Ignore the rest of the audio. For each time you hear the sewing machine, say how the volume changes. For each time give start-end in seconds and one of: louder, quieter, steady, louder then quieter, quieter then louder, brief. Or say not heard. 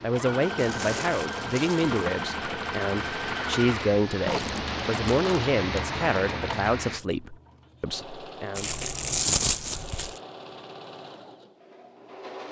0.0-12.4 quieter.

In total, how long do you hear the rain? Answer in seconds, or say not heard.
7 s.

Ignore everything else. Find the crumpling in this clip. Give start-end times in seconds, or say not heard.
0.6-1.9, 4.2-5.3, 8.6-10.2.